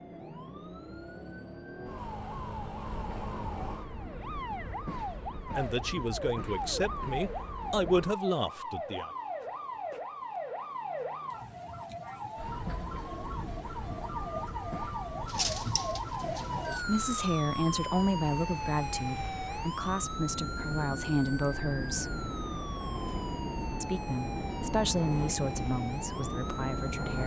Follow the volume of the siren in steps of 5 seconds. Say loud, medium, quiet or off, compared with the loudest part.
medium, loud, loud, loud, medium, medium.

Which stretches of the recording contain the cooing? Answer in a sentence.
The cooing can be heard from 15.2 to 16.9 s.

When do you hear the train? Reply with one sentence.
The train can be heard from 2.9 to 8.2 s and from 12.3 to 27.2 s.